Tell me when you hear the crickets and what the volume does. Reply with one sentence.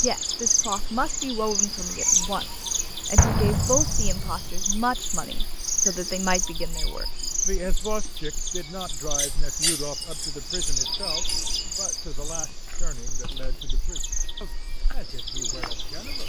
The crickets can be heard from 0.0 to 16.2 s, getting quieter.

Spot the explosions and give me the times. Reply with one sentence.
You can hear the explosions from 3.1 to 4.5 s.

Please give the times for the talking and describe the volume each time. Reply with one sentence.
You can hear the talking from 0.0 to 16.2 s, getting quieter.